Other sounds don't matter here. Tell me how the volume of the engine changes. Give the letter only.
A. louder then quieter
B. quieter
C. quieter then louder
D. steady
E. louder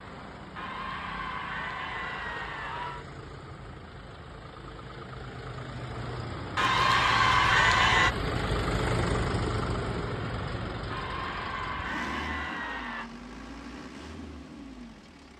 A.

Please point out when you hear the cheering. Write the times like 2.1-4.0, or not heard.
0.6-3.0, 6.5-8.2, 10.9-13.1.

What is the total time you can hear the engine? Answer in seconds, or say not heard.
15 s.